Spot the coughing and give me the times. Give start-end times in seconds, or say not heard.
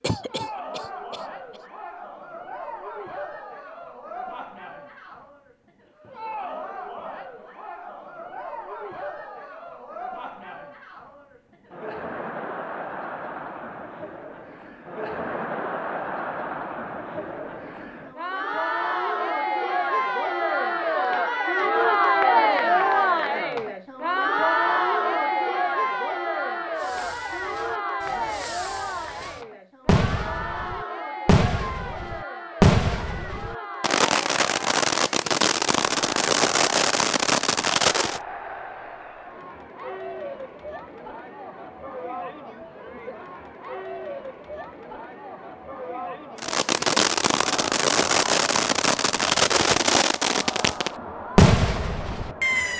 0.0-1.6.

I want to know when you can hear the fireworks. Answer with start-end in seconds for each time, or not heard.
26.8-38.2, 46.4-52.7.